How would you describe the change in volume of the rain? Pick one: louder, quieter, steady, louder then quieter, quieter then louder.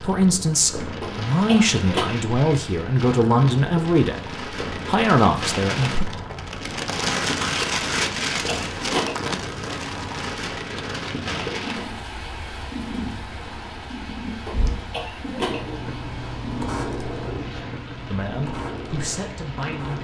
louder then quieter.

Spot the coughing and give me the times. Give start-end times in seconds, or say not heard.
1.0-2.1, 8.0-9.3, 14.4-15.8.